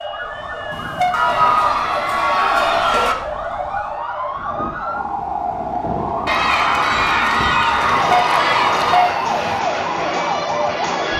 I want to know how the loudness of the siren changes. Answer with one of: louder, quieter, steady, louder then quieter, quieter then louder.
louder.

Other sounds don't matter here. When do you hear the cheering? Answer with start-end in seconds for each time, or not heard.
1.1-3.1, 6.2-9.0.